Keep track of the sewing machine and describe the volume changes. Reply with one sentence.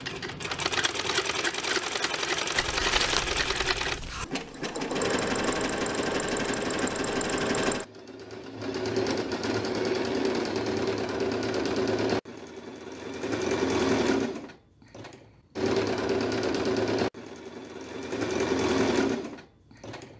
The loudness of the sewing machine stays about the same.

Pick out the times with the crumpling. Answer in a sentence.
The crumpling can be heard from 2.5 to 4.2 s.